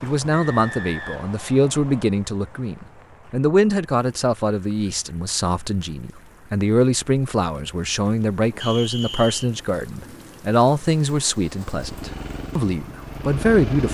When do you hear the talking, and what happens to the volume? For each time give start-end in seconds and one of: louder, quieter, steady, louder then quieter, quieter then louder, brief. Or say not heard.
0.0-13.8 steady.